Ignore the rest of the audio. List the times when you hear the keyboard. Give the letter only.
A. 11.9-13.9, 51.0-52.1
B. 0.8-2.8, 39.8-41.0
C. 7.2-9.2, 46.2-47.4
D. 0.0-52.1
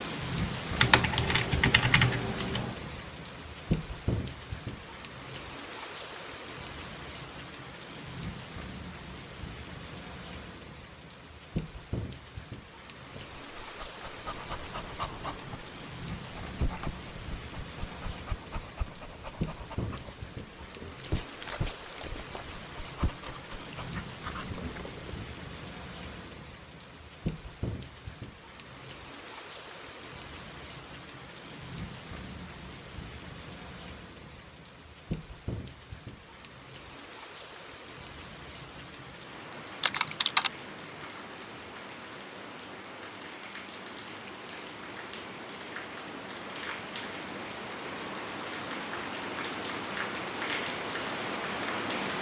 B.